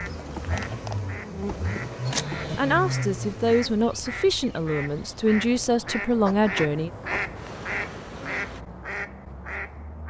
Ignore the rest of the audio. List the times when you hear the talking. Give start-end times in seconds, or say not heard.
2.5-6.9.